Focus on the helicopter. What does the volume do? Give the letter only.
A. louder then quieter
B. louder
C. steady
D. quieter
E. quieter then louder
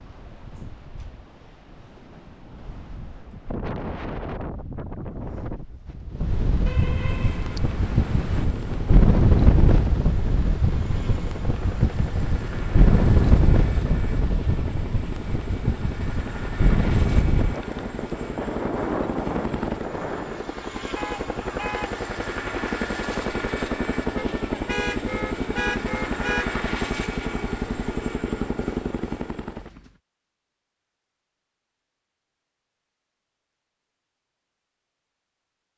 B.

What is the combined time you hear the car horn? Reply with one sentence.
You can hear the car horn for 5 seconds altogether.